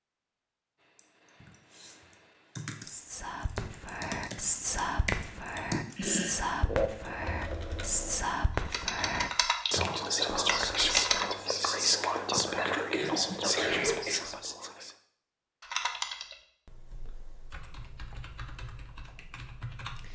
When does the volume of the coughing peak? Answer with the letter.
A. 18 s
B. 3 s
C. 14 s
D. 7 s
C.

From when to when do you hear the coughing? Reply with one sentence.
You can hear the coughing from 5.7 to 6.4 s and from 12.7 to 14.2 s.